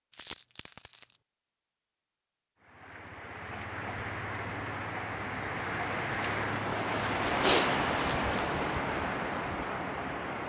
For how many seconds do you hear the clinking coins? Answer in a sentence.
The clinking coins can be heard for 2 seconds in total.